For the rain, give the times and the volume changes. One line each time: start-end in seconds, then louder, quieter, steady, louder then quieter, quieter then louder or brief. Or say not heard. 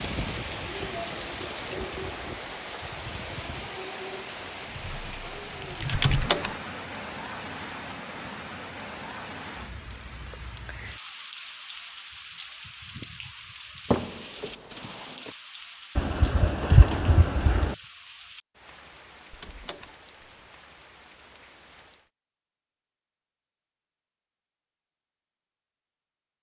0.0-22.1 quieter.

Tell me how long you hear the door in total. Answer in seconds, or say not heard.
3 s.